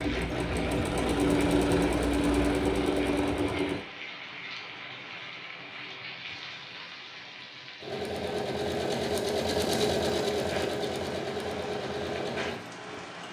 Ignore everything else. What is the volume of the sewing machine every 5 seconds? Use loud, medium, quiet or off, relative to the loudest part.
loud, loud, medium.